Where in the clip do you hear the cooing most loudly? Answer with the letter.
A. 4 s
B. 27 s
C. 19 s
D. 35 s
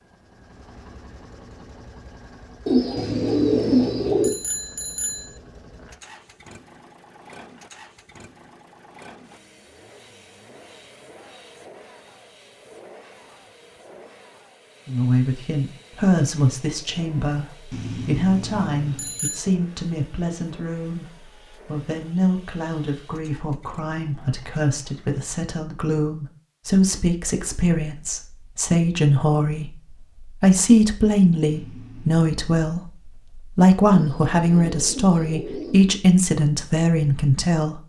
A.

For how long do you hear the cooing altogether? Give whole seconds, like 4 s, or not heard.
4 s.